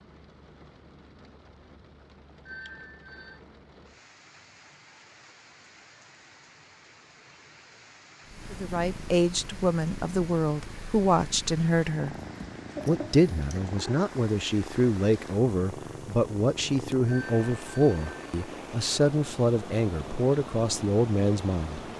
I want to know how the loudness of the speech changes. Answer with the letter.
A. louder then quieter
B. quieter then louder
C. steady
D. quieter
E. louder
C.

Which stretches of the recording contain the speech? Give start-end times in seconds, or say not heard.
8.5-12.2, 12.8-21.8.